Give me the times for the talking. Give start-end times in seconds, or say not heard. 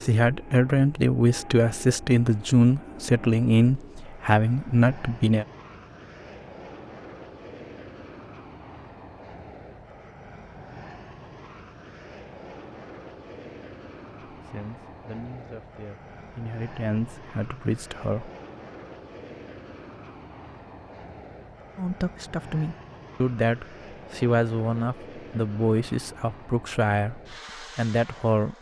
0.0-5.5, 14.3-18.3, 21.8-28.5.